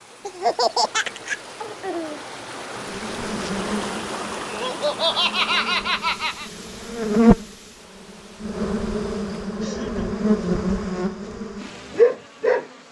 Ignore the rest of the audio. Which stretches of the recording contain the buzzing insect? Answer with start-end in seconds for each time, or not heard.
2.8-12.8.